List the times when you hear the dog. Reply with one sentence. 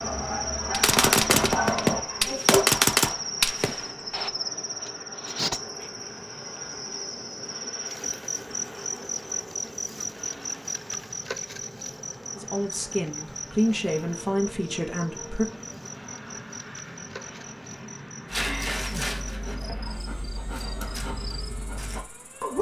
You can hear the dog from 0.0 to 2.6 s and from 18.2 to 22.5 s.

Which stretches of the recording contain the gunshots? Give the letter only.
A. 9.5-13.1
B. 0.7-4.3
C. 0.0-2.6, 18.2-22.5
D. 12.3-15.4
B.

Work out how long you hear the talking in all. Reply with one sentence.
You can hear the talking for 3 seconds altogether.